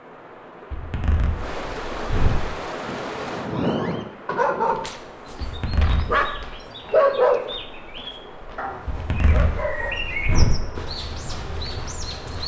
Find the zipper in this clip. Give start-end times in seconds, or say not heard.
0.7-2.5, 5.4-6.5, 8.8-10.7.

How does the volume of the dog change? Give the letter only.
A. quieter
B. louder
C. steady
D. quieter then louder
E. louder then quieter
E.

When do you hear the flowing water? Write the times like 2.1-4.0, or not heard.
0.0-12.4.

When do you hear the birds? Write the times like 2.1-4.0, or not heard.
4.7-12.4.